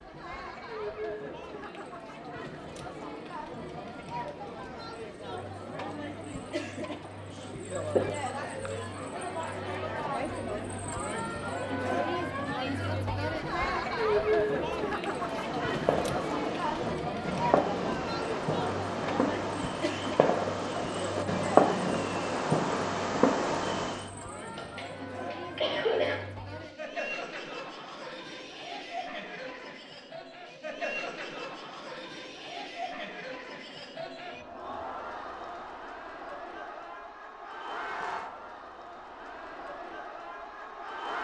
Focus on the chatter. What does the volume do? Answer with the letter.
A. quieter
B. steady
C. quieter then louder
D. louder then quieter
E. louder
D.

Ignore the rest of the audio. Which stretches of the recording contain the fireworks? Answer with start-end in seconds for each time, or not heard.
15.1-24.1.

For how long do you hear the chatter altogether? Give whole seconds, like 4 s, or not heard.
41 s.